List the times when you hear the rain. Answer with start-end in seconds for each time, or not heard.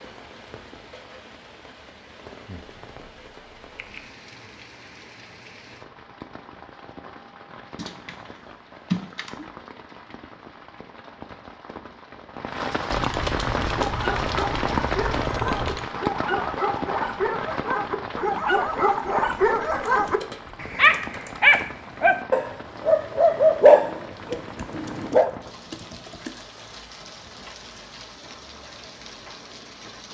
0.0-30.0.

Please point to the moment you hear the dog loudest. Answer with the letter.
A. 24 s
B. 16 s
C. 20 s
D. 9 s
A.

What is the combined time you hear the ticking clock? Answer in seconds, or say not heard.
not heard.